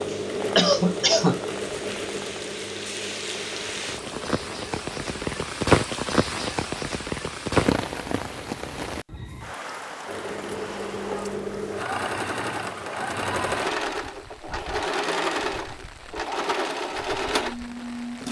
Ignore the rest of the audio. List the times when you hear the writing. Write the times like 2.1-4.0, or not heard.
not heard.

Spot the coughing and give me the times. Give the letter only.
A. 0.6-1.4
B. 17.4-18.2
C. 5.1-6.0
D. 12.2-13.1
A.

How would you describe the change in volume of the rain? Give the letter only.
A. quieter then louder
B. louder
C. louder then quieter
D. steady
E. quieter
C.